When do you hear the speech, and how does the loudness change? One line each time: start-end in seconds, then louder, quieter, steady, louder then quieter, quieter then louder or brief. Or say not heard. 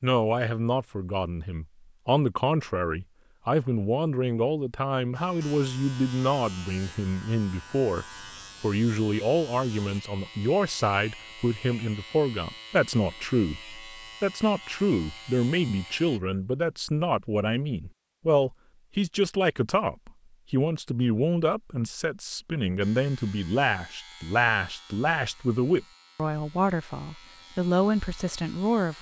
0.0-28.9 steady.